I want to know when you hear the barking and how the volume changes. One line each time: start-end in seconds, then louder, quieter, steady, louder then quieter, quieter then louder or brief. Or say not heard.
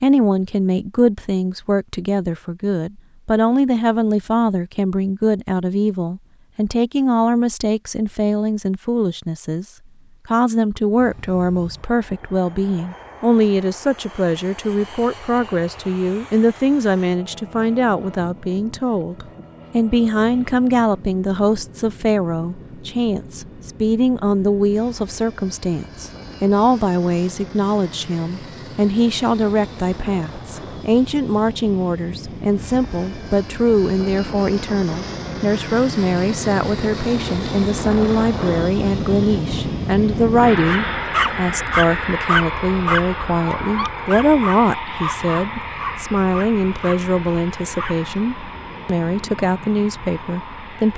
40.6-48.1 quieter.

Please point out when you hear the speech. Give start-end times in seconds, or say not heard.
0.0-9.7, 10.2-50.9.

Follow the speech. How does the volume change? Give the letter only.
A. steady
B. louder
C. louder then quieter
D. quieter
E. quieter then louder
A.